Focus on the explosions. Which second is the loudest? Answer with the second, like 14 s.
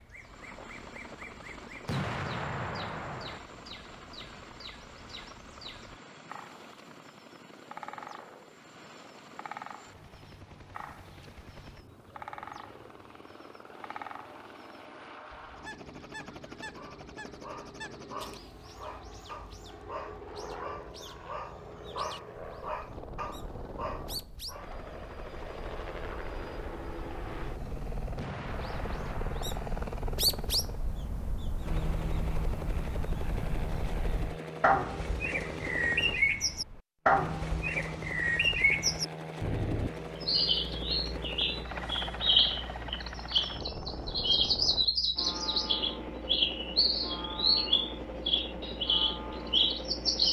2 s.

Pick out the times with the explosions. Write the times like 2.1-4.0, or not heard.
1.9-3.4, 28.1-29.6.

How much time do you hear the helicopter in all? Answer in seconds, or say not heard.
50 s.